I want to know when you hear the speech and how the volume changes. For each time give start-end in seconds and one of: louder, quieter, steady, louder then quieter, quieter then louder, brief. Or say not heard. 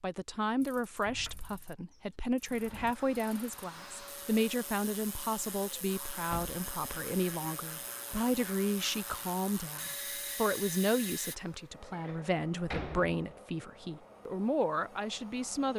0.0-15.7 steady.